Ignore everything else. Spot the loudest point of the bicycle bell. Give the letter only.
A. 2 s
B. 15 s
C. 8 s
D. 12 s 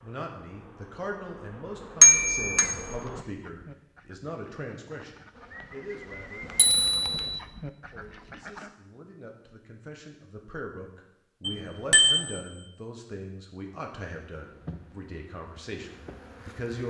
A.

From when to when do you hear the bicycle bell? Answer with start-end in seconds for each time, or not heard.
2.0-2.7, 6.5-7.2, 11.4-12.2.